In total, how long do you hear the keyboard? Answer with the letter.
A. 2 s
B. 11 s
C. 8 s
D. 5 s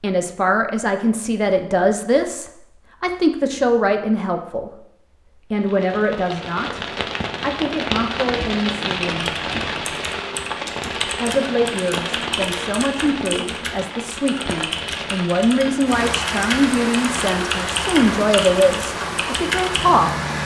B.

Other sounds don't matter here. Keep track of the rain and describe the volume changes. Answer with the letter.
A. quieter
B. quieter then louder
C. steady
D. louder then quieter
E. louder
C.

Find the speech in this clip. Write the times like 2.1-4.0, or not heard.
0.0-9.3, 11.2-20.2.